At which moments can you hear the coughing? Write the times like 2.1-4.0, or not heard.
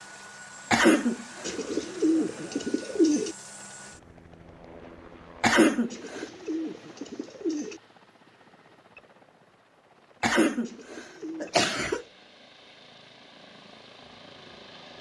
0.7-1.5, 5.4-6.2, 10.2-12.1.